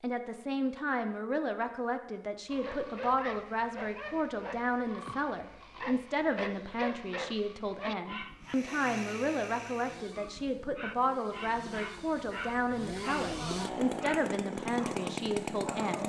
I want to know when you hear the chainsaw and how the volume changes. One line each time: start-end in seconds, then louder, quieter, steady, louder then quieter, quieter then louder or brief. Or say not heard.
8.4-16.0 quieter then louder.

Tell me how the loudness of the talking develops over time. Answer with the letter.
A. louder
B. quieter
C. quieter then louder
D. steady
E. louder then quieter
D.